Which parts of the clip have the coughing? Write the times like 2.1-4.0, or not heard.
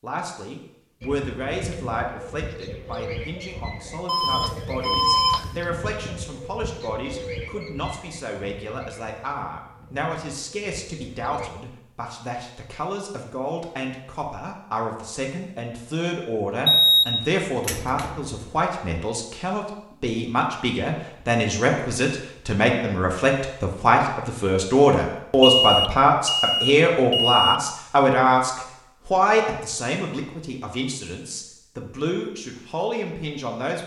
not heard.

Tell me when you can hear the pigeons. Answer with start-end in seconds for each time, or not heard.
1.0-11.5.